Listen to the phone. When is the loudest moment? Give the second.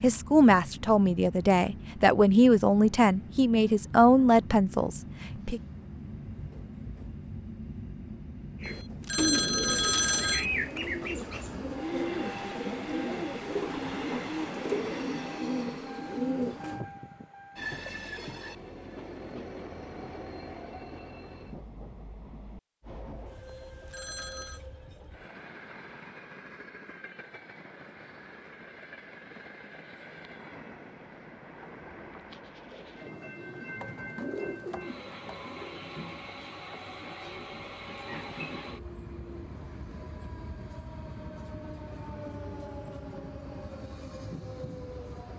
10 s.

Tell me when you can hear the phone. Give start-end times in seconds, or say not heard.
8.7-10.4, 23.4-24.6.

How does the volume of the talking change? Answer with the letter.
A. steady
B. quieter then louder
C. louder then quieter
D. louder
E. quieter
A.